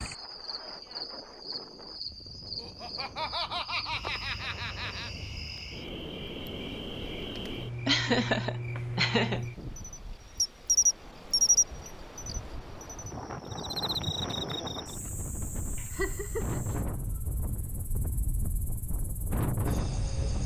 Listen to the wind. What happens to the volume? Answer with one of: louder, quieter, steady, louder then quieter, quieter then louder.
louder.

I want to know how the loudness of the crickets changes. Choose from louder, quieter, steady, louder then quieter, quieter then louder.
louder then quieter.